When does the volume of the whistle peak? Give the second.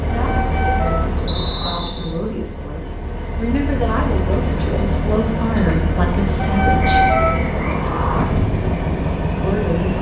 2 s.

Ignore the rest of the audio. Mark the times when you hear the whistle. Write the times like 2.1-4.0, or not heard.
1.2-2.1, 7.0-7.8.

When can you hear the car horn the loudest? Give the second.
7 s.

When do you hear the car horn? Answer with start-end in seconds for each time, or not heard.
0.1-1.9, 6.3-8.2.